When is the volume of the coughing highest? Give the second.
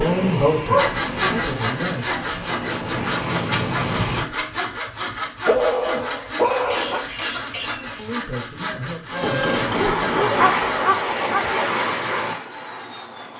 7 s.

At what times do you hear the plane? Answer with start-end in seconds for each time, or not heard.
0.0-4.2, 9.1-13.3.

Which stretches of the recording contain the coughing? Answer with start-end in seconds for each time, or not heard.
6.2-8.1.